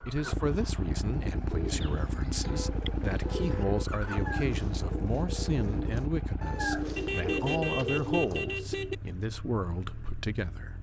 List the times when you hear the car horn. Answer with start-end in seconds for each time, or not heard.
2.4-3.9, 7.0-8.9.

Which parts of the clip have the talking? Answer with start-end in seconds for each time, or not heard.
0.1-10.7.